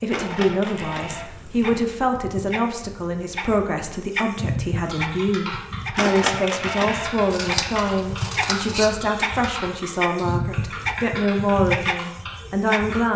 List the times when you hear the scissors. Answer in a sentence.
You can hear the scissors from 0.7 to 1.8 s and from 7.3 to 8.9 s.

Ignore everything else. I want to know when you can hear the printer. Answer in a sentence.
The printer can be heard from 0.0 to 13.1 s.